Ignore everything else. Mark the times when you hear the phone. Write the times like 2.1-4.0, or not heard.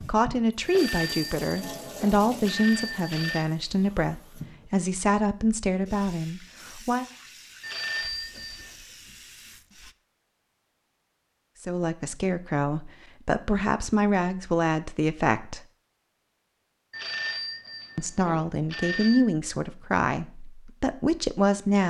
0.7-3.5, 7.6-8.8, 16.9-19.3.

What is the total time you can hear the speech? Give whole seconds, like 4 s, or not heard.
15 s.